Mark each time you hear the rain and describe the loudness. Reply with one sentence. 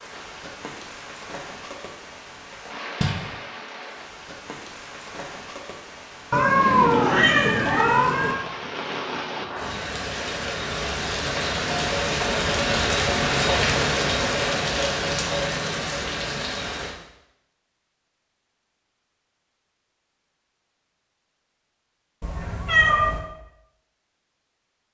You can hear the rain from 0.0 to 16.9 s, getting louder.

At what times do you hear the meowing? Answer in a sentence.
You can hear the meowing from 6.3 to 8.3 s and from 22.2 to 23.2 s.